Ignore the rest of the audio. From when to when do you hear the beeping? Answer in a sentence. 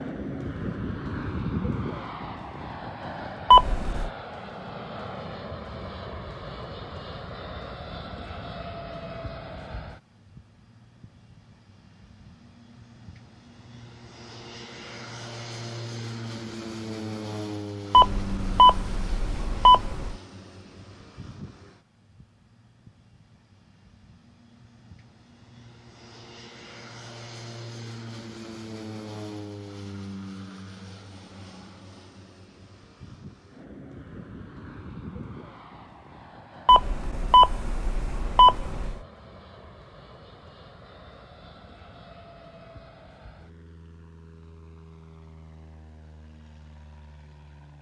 The beeping can be heard from 3.5 to 4.1 s, from 17.9 to 20.1 s and from 36.6 to 39.0 s.